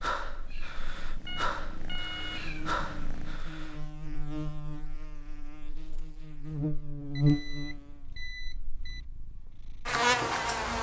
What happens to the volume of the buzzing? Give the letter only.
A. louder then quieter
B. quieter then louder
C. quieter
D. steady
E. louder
E.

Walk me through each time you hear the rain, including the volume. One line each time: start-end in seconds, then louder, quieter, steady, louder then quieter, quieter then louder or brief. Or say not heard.
not heard.